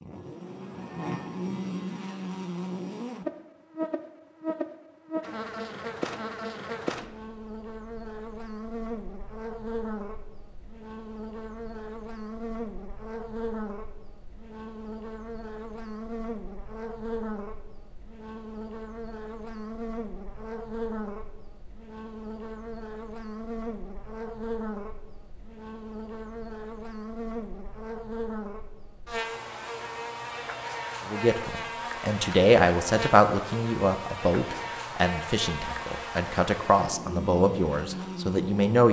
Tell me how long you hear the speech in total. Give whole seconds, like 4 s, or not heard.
8 s.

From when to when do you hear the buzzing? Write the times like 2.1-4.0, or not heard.
0.0-38.8.